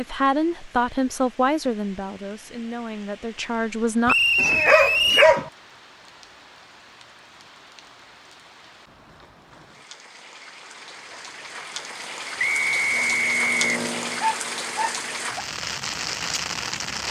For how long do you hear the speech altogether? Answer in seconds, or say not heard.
4 s.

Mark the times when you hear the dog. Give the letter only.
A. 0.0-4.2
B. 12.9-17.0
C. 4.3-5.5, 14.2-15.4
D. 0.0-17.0
C.